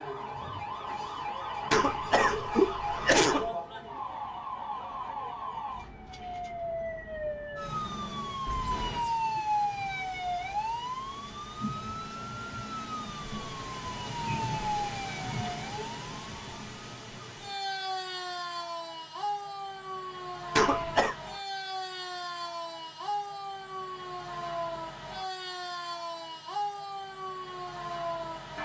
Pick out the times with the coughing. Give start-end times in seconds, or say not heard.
1.7-3.5, 20.6-21.1.